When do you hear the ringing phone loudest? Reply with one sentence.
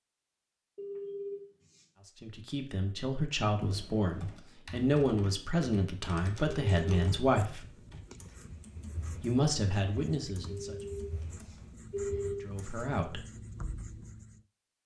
The loudest moment of the ringing phone is at 12 seconds.